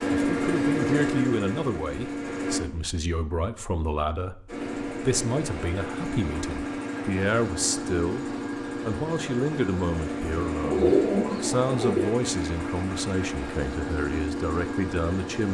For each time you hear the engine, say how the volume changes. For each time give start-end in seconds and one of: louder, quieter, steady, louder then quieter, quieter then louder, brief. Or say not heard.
0.0-2.6 brief
4.5-15.4 steady.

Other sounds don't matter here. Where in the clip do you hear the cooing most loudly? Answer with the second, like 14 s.
11 s.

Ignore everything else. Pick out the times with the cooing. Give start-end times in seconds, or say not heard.
10.2-12.2.